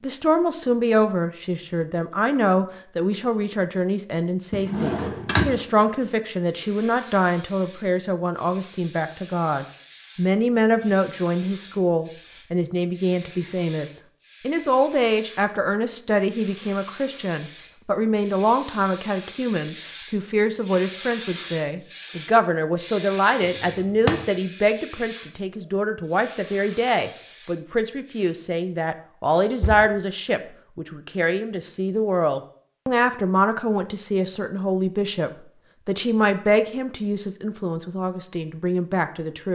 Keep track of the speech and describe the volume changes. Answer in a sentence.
The loudness of the speech stays about the same.